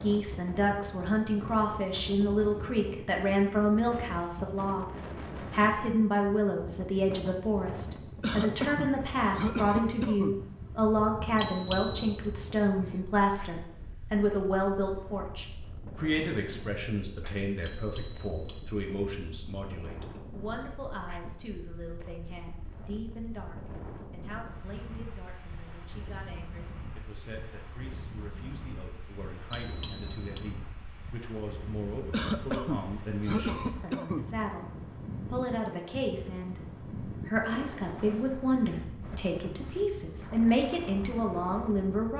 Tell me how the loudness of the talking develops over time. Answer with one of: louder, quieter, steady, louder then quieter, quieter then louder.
quieter then louder.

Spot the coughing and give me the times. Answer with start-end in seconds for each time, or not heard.
8.2-10.4, 32.1-34.4.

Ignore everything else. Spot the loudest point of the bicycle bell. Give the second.
12 s.